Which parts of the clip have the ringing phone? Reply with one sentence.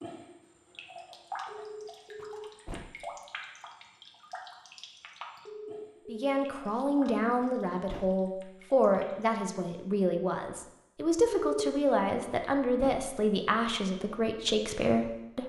You can hear the ringing phone from 1.4 to 2.5 s, from 5.5 to 6.5 s and from 11.3 to 11.8 s.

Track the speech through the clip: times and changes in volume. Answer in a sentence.
You can hear the speech from 6.0 to 15.4 s, at a steady volume.